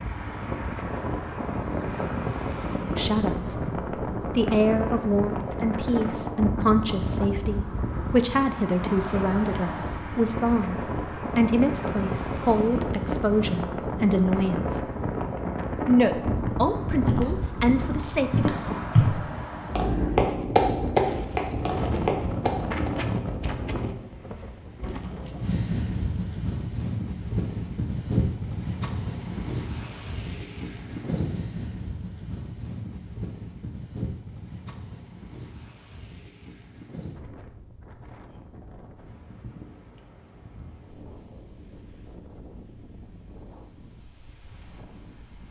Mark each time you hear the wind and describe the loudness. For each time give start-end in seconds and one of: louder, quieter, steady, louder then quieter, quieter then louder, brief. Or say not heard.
0.0-45.4 quieter.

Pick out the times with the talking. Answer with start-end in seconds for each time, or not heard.
3.0-10.8, 11.3-14.8, 15.8-18.6.